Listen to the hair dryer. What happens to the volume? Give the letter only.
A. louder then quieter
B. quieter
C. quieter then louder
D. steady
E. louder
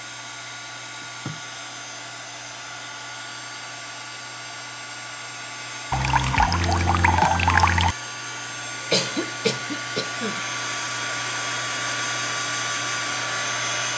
E.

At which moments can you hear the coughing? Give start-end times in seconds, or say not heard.
8.9-10.4.